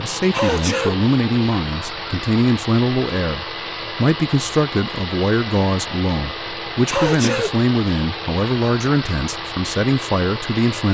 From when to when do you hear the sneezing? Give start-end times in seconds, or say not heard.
0.3-1.0, 6.9-7.5.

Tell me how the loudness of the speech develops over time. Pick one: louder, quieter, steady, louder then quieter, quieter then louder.
steady.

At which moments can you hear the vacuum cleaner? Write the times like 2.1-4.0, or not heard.
0.0-10.8.